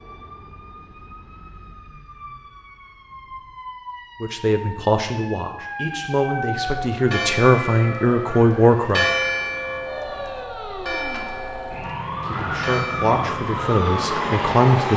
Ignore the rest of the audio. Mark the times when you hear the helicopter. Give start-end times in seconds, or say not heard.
12.2-14.9.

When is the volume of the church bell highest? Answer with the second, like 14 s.
9 s.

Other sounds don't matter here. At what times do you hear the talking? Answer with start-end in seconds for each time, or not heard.
4.2-9.1, 12.2-14.9.